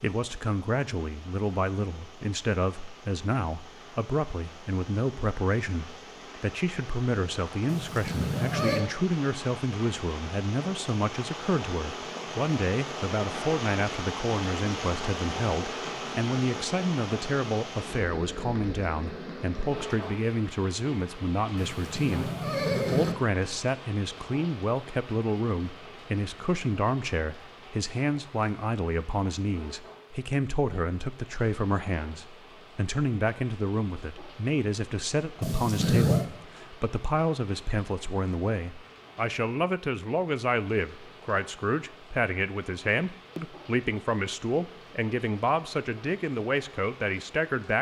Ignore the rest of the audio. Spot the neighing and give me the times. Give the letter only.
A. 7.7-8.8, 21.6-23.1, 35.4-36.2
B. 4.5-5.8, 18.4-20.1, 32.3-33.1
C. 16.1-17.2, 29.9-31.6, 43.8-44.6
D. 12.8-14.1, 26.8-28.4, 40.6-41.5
A.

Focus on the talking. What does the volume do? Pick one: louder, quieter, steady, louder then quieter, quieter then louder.
steady.